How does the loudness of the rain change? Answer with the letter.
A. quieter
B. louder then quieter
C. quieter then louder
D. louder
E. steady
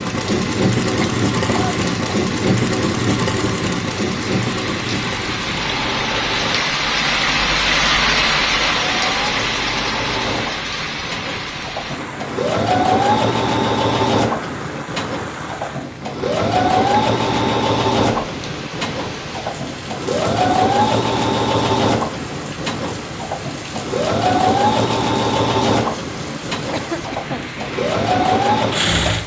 B.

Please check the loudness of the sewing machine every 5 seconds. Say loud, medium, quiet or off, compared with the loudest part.
loud, medium, loud, loud, loud, loud.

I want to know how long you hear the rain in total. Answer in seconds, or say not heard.
29 s.